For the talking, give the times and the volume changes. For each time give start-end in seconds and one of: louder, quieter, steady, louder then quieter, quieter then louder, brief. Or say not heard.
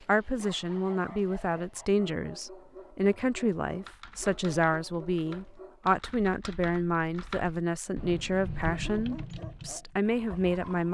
0.1-10.8 steady.